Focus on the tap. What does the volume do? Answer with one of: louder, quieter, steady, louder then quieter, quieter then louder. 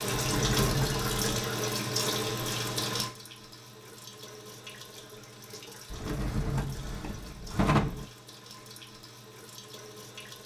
quieter.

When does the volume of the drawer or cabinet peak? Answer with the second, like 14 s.
8 s.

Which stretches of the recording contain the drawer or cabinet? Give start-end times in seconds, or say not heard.
0.1-1.5, 5.9-8.1.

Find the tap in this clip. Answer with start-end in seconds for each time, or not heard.
0.0-10.4.